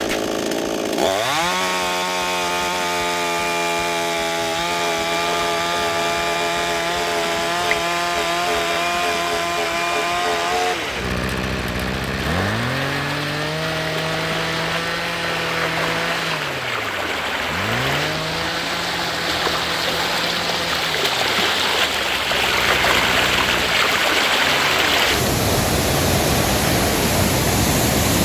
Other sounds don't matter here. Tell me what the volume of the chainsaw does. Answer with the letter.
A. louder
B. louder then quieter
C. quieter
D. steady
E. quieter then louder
C.